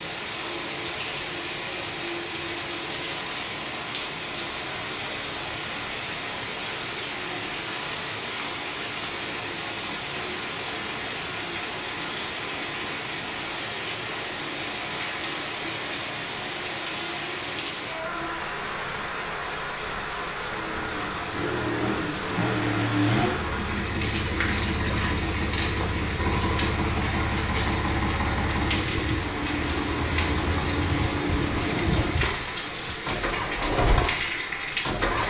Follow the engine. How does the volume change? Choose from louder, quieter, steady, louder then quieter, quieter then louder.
steady.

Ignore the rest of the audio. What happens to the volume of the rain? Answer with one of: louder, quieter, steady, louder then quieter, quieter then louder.
steady.